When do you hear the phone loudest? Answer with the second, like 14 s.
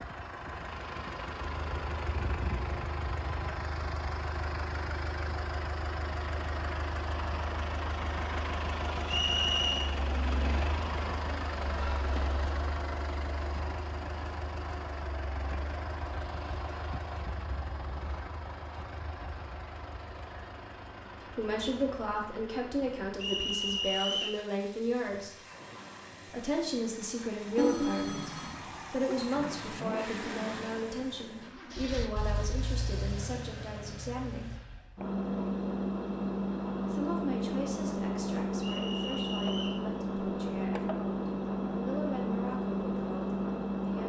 28 s.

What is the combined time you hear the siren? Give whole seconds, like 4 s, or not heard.
not heard.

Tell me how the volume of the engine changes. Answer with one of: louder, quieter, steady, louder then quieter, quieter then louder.
quieter then louder.